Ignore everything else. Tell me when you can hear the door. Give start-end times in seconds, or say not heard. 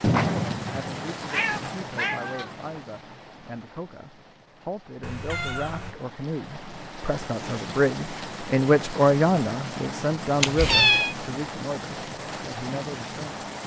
not heard.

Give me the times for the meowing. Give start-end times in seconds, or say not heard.
0.0-2.5, 5.0-6.0, 10.4-11.2.